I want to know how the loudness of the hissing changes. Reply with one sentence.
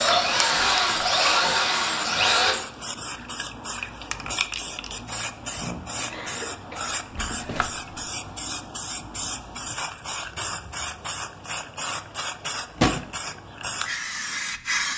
The volume of the hissing stays about the same.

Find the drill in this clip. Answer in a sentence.
The drill can be heard from 0.0 to 2.5 s.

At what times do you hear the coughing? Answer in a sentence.
The coughing can be heard from 5.5 to 7.0 s.